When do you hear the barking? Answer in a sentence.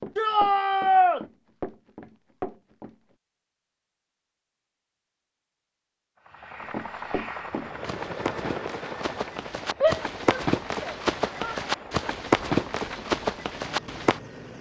You can't hear the barking here.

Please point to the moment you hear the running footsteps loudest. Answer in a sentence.
The volume of the running footsteps peaks at 12 seconds.